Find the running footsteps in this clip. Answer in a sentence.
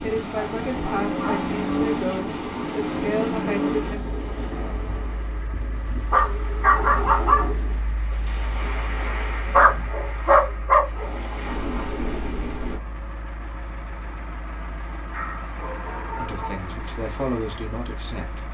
The running footsteps can't be heard in this clip.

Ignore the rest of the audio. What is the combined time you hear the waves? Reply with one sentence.
The waves can be heard for 13 seconds in total.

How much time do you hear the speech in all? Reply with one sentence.
You can hear the speech for 6 seconds altogether.